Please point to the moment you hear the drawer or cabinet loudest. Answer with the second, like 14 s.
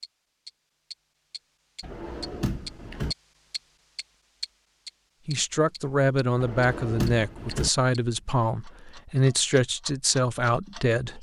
7 s.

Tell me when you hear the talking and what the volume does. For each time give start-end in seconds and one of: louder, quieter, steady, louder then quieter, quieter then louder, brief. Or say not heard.
5.2-11.1 steady.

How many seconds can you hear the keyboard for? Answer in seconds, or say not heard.
not heard.